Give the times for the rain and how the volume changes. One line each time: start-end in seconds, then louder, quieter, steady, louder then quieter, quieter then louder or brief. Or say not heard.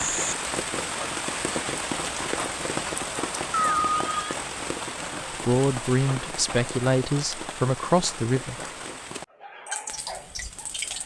0.0-11.0 quieter.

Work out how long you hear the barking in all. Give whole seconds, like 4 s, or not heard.
2 s.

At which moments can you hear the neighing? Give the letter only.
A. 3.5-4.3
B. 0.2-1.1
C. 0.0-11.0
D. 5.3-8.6
A.